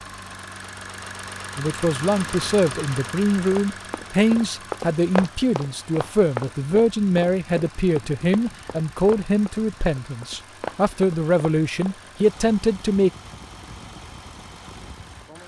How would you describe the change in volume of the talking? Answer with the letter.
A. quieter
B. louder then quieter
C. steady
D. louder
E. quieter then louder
C.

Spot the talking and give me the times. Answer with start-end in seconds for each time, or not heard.
1.6-13.1.